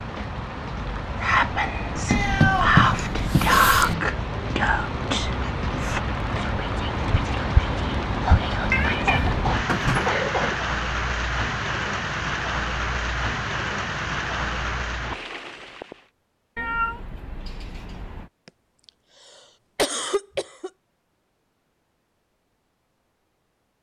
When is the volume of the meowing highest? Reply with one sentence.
The loudest moment of the meowing is at 3 seconds.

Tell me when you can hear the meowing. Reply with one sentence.
You can hear the meowing from 2.0 to 4.0 s, from 8.7 to 10.2 s and from 16.6 to 18.3 s.